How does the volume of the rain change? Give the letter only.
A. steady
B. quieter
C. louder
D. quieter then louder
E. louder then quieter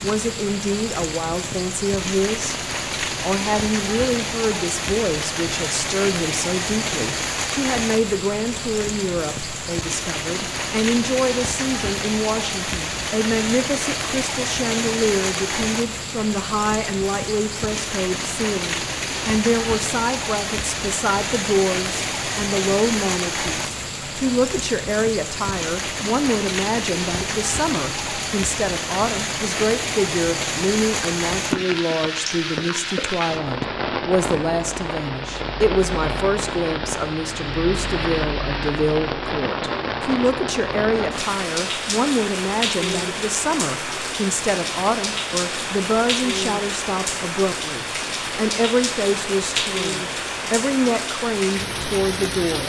A.